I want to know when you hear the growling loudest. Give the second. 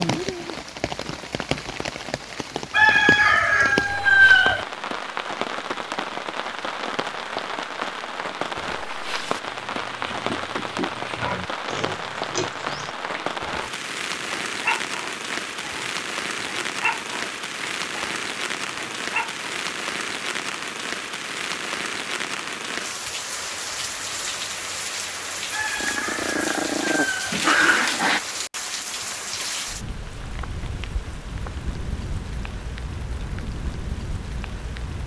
28 s.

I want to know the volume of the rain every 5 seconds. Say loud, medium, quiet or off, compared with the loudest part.
loud, loud, loud, loud, loud, loud, medium.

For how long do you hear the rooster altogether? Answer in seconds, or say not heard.
4 s.